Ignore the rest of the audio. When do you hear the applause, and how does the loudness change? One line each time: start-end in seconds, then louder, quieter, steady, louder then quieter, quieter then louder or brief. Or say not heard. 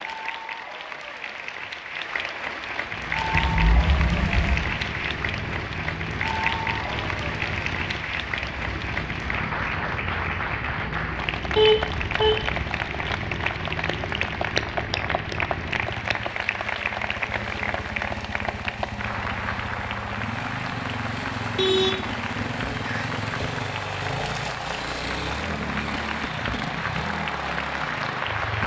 0.0-28.6 steady.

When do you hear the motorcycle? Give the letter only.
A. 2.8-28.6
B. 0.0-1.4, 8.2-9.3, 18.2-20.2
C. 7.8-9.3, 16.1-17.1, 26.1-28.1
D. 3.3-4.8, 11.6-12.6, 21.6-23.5
A.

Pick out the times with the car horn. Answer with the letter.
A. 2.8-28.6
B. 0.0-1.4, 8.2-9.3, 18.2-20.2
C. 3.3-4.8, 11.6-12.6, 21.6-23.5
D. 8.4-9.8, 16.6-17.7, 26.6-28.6
C.